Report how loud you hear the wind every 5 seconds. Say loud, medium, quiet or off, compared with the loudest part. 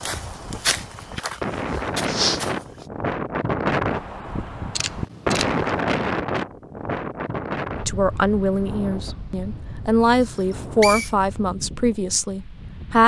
loud, loud, quiet.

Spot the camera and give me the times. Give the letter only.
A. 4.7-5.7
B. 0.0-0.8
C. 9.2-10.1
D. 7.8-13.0
A.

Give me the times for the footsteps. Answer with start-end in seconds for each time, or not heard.
0.0-2.9.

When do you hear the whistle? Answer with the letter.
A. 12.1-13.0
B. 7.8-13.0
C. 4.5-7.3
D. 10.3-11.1
D.